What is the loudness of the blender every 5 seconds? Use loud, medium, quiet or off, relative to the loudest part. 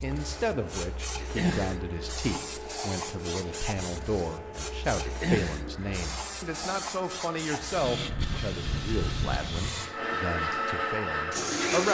quiet, quiet, loud.